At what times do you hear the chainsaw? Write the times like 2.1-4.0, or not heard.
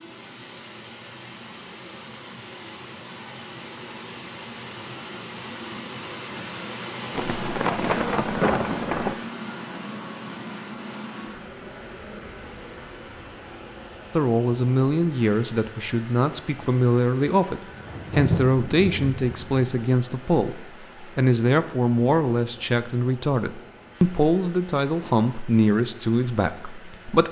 not heard.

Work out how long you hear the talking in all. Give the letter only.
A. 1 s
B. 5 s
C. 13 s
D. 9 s
C.